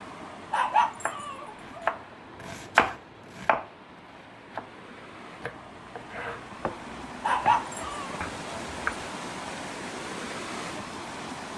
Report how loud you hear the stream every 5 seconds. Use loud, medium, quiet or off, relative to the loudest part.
medium, loud, loud.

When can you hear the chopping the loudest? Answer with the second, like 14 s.
3 s.